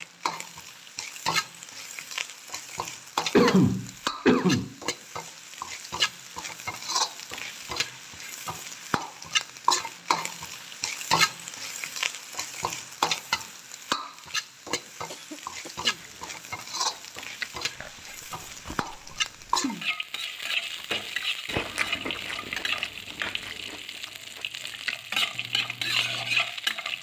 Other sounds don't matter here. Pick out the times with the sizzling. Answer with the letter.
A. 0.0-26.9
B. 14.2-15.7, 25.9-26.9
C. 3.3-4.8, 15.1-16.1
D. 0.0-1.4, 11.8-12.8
A.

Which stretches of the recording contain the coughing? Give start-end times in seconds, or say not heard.
3.3-4.8, 15.1-16.1.